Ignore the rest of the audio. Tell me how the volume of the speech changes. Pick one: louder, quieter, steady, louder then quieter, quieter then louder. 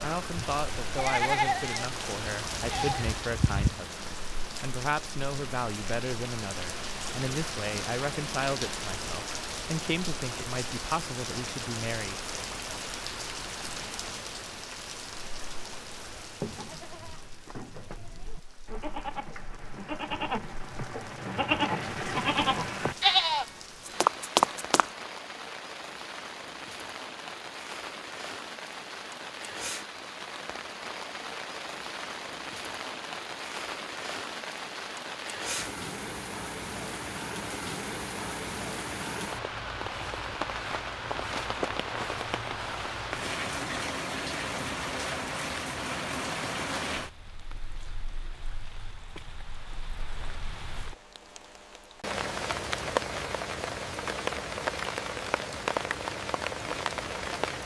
steady.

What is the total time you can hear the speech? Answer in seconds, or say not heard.
12 s.